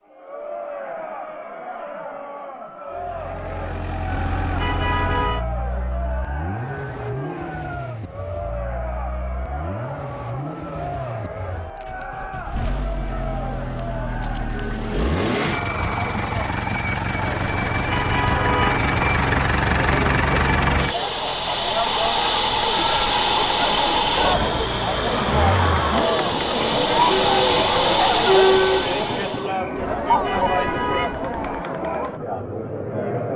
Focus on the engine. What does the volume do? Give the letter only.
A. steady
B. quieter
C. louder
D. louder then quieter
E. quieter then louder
C.